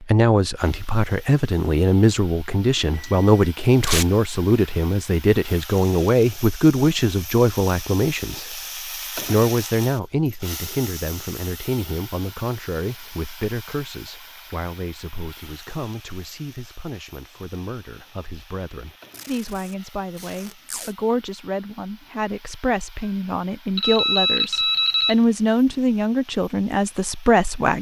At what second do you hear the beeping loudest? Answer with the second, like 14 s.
24 s.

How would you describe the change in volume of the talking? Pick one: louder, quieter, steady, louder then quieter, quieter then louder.
quieter then louder.